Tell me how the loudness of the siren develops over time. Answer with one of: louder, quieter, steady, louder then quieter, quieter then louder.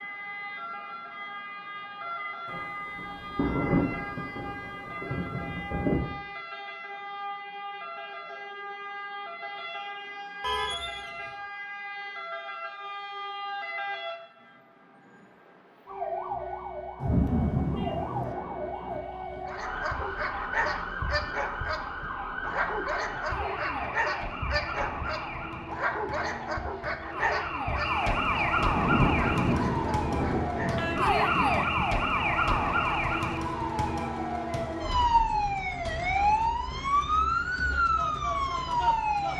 louder.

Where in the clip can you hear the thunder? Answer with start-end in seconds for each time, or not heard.
2.5-6.2, 17.0-18.4, 28.6-31.9.